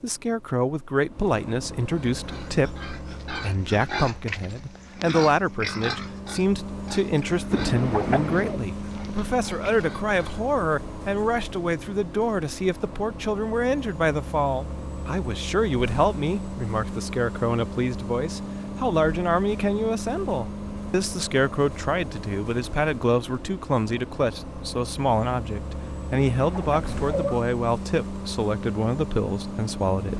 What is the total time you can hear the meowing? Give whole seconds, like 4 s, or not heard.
2 s.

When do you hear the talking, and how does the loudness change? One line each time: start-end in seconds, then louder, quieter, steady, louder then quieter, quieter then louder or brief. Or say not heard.
0.0-30.1 steady.